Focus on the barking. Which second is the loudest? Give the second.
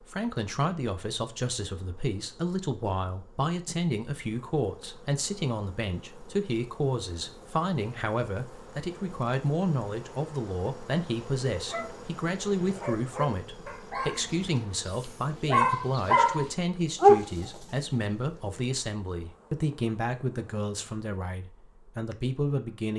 17 s.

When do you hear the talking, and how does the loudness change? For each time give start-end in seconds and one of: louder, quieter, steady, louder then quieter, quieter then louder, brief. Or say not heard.
0.1-22.9 steady.